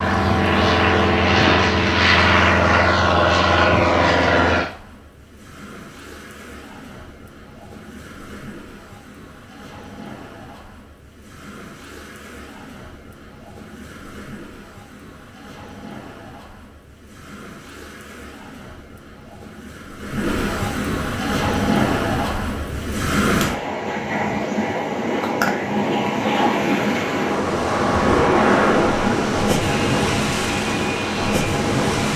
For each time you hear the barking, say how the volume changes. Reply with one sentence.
You can't hear the barking here.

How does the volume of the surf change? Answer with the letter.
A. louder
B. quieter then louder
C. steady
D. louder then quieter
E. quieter
A.